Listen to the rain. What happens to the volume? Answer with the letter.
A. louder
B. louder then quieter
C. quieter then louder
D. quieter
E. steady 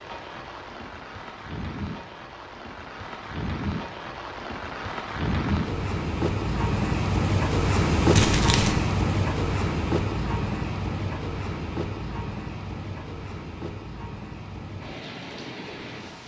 B.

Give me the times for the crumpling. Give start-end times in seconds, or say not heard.
8.2-8.8.